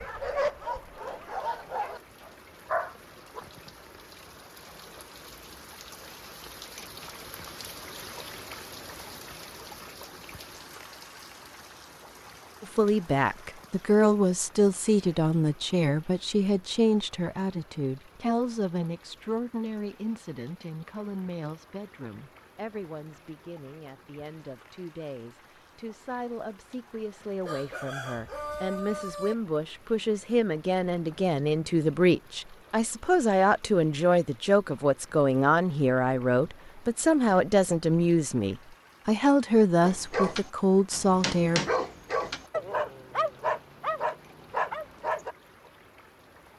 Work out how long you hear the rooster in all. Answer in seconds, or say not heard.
2 s.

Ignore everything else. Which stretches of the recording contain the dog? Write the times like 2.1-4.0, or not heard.
0.0-3.5, 39.8-45.4.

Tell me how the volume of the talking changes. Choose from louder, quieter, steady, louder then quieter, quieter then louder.
quieter then louder.